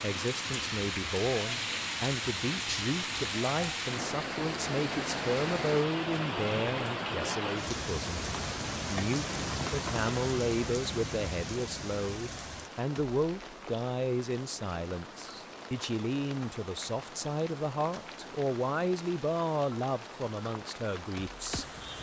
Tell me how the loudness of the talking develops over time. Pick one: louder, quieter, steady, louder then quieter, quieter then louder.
steady.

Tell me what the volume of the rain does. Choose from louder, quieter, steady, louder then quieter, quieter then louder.
quieter.